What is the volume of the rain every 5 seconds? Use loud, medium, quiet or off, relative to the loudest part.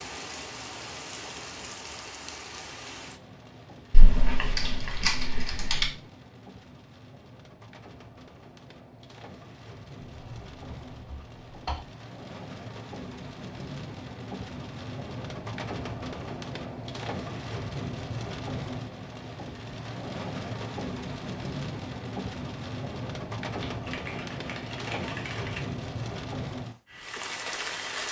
medium, quiet, medium, loud, loud, loud.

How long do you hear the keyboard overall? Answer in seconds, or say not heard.
6 s.